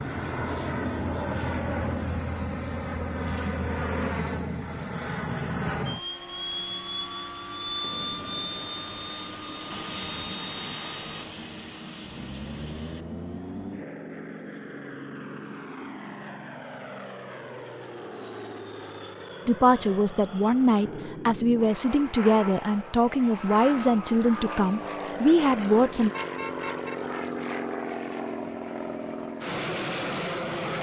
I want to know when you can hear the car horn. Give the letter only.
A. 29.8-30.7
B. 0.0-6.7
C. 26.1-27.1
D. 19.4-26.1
C.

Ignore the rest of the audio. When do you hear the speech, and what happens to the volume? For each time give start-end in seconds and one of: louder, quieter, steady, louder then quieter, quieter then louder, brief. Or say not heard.
19.4-26.1 steady.